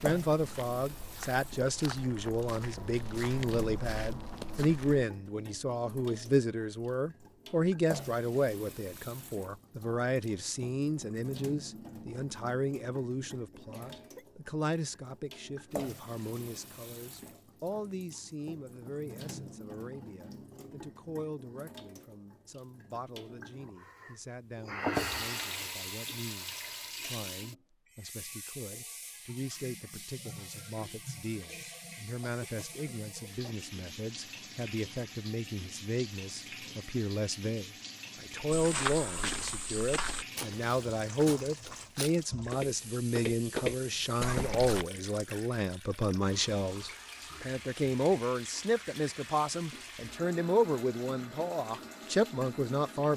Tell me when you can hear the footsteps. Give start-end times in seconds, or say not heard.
0.0-5.0, 38.5-44.9.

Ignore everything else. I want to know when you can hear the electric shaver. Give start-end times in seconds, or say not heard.
not heard.